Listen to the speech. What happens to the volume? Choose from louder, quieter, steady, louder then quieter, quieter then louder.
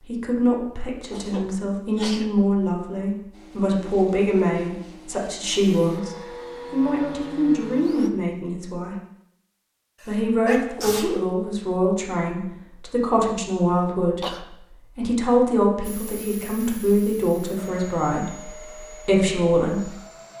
steady.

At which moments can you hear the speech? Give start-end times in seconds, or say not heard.
0.1-8.9, 10.1-19.9.